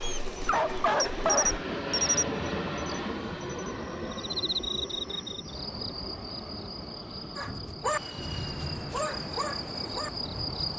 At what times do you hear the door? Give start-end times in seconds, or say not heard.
not heard.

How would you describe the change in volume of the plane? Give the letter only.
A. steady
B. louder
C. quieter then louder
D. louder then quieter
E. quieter
E.